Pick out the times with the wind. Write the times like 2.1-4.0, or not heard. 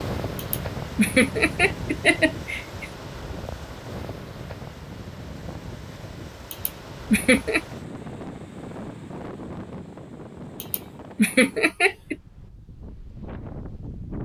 0.0-14.2.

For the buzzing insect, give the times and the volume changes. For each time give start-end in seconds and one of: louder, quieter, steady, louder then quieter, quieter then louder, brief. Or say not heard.
not heard.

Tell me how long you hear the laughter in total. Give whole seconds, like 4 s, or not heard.
5 s.